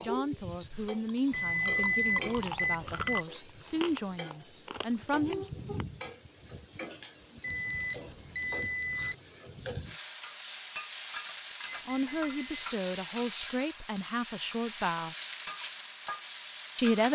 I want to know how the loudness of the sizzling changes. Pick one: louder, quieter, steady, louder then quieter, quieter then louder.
steady.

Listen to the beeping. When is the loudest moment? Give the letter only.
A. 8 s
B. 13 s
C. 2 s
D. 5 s
C.